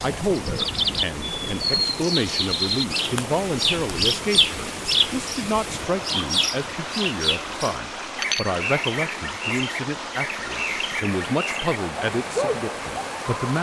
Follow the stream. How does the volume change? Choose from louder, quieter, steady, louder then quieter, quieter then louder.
steady.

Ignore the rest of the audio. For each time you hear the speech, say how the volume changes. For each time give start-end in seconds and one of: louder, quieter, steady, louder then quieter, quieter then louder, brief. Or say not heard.
0.0-13.5 steady.